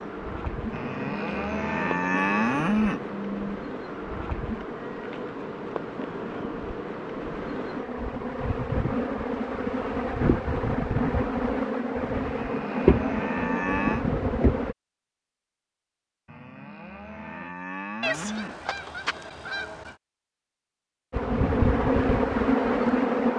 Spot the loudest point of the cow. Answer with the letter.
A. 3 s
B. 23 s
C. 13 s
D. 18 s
A.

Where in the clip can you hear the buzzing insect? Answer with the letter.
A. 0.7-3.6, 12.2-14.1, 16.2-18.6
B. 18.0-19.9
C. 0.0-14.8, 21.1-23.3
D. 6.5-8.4
C.